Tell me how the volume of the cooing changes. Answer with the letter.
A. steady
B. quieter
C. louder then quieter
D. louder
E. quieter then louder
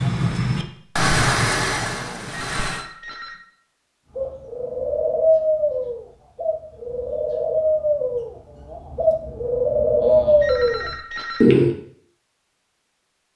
E.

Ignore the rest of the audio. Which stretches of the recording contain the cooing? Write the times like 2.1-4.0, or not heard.
4.2-11.7.